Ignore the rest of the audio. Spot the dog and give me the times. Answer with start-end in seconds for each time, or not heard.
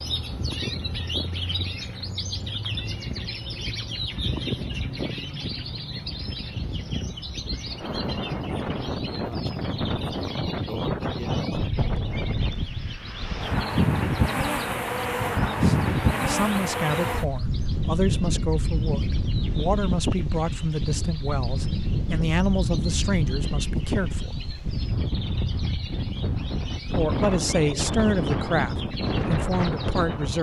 not heard.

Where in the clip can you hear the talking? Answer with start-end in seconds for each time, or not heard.
15.4-24.4, 26.8-30.3.